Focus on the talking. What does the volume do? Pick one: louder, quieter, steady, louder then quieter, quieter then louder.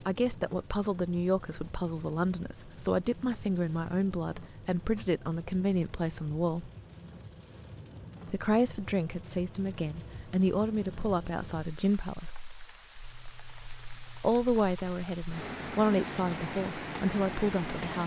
steady.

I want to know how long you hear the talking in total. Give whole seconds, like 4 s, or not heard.
15 s.